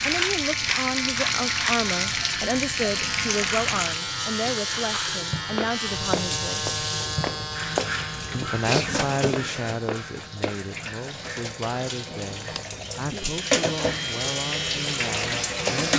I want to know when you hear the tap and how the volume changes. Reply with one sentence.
You can hear the tap from 0.0 to 15.9 s, getting quieter then louder.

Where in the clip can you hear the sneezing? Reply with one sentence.
The sneezing can be heard from 8.2 to 9.1 s.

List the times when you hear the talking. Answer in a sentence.
You can hear the talking from 0.0 to 6.8 s and from 8.3 to 15.9 s.